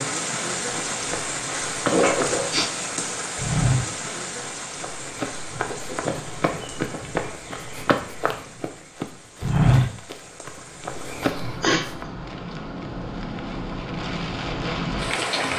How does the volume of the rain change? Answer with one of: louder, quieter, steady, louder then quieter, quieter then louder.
quieter then louder.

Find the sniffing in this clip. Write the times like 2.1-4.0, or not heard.
1.9-2.6, 11.4-11.8.